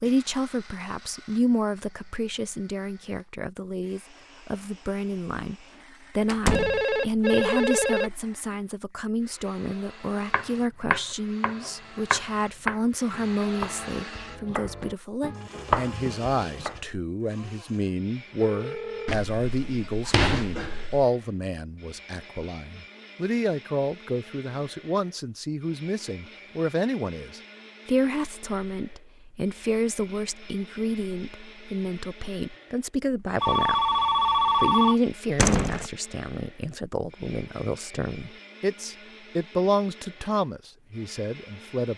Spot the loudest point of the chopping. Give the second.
16 s.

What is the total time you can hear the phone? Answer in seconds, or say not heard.
4 s.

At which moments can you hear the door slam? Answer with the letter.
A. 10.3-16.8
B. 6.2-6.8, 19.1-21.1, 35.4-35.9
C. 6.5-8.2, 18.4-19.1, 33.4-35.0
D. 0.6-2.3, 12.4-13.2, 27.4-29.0
B.